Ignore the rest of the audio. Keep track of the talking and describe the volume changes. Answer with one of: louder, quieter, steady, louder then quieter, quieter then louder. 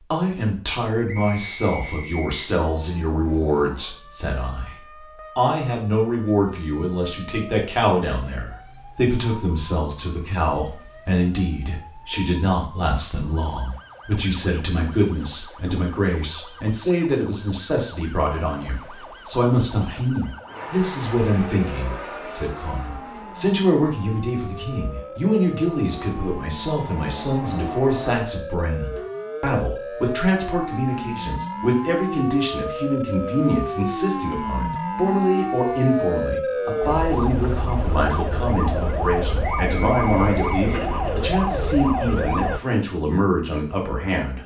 steady.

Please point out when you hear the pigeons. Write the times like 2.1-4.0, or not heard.
not heard.